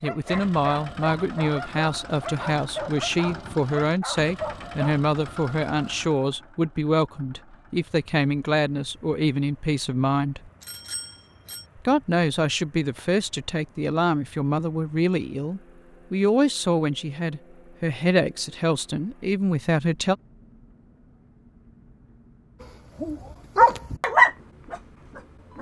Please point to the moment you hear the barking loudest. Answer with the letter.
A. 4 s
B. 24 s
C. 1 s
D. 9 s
B.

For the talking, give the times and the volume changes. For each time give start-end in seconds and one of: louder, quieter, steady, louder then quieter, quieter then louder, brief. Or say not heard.
0.0-10.5 steady
11.8-20.1 steady.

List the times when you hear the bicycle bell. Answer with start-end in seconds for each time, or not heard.
10.6-11.7.